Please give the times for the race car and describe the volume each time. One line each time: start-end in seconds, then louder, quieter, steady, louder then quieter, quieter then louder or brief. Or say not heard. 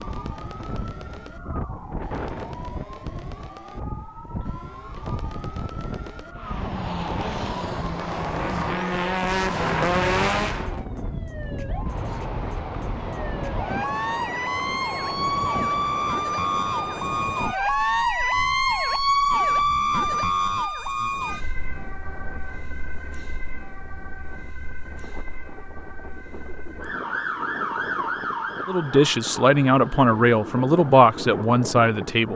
6.3-10.8 louder.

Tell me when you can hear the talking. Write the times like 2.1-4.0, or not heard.
28.6-32.3.